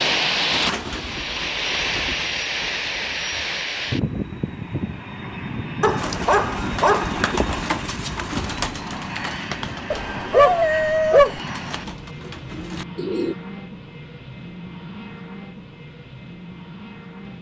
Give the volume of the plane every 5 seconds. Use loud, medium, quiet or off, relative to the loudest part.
loud, medium, medium, quiet.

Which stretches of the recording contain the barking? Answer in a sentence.
The barking can be heard from 5.8 to 7.2 s and from 9.9 to 11.4 s.